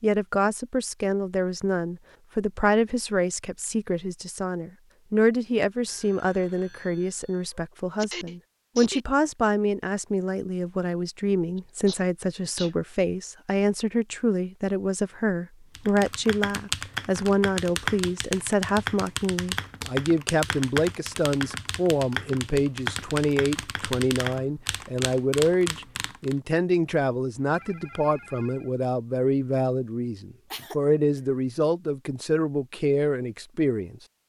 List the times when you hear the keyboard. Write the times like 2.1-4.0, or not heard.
15.8-26.4.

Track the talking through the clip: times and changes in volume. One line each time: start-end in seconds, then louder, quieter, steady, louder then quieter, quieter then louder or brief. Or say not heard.
0.0-34.0 steady.